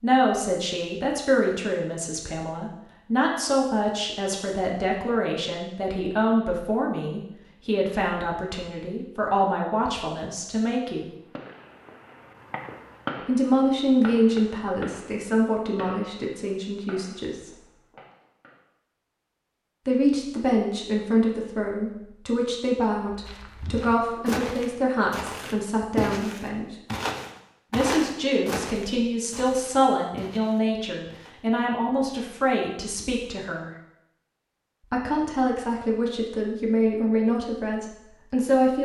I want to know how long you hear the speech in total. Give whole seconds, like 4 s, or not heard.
32 s.